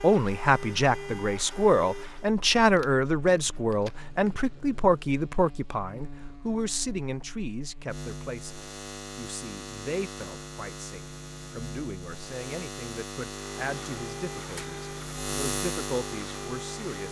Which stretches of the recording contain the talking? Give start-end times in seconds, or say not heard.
0.0-17.0.